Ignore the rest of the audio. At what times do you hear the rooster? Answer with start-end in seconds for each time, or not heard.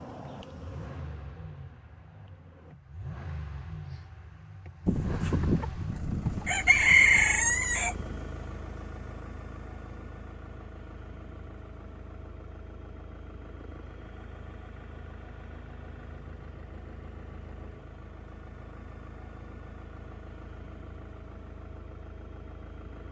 4.8-8.1.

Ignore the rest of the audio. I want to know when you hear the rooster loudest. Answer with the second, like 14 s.
7 s.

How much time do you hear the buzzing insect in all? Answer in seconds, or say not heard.
3 s.